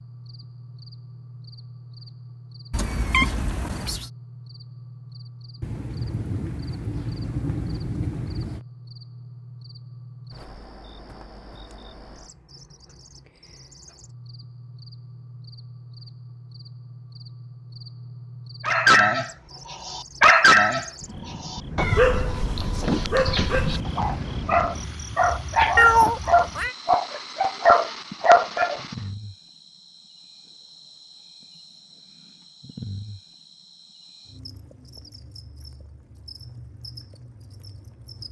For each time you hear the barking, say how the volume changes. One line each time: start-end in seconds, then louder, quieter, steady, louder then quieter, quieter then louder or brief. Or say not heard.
18.6-28.9 quieter then louder.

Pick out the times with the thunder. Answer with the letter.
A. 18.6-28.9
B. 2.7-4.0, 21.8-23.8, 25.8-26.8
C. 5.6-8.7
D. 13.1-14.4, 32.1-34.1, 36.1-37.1
C.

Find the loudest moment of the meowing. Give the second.
26 s.